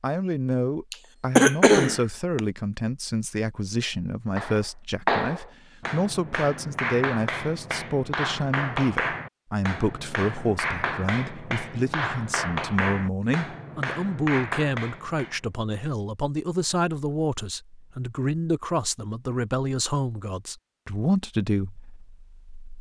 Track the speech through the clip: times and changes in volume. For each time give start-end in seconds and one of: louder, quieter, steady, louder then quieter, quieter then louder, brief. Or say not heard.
0.0-22.7 steady.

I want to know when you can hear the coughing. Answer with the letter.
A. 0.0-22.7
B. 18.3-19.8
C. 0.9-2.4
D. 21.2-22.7
C.